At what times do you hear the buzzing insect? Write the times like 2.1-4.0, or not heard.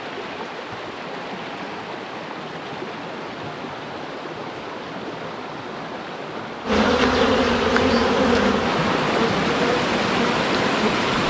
6.7-11.2.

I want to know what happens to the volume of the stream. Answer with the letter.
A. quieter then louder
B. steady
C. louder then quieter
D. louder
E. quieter
D.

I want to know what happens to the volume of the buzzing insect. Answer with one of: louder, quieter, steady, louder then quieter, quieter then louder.
quieter.